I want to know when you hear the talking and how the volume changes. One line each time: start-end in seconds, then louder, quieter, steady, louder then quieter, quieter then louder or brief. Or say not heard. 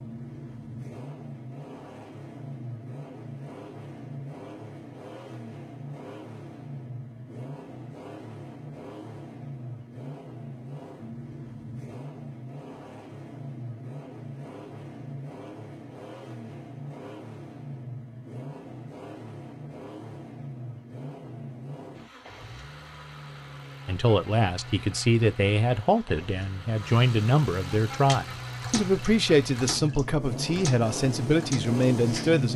23.9-32.5 steady.